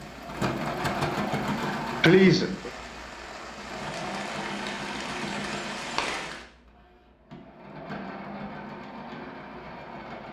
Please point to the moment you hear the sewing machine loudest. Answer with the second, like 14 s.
1 s.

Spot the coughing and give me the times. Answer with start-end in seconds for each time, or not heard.
2.0-2.7.